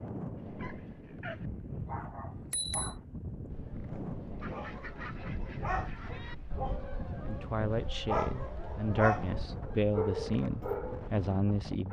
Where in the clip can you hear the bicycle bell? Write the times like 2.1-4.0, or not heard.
2.3-3.0.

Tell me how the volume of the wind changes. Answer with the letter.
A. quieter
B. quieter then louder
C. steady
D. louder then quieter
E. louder
C.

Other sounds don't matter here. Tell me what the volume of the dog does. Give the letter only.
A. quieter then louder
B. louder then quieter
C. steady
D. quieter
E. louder
E.